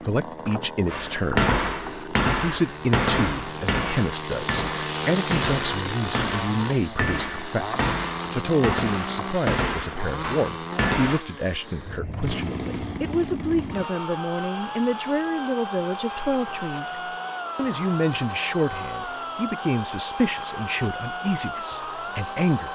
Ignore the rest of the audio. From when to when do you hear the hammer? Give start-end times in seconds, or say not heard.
0.8-11.2.